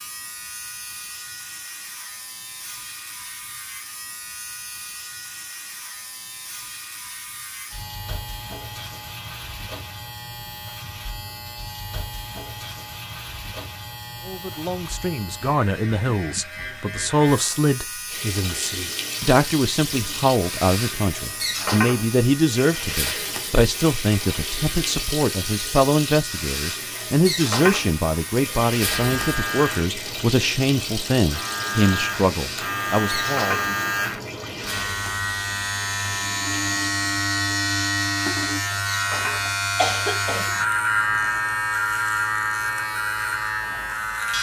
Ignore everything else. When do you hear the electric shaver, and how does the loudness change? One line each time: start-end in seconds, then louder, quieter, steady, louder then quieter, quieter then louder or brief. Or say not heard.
0.0-44.3 louder.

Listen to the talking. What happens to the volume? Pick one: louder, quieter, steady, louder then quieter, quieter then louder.
steady.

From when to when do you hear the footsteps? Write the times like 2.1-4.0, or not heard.
not heard.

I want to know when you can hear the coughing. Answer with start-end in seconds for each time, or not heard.
39.5-40.5.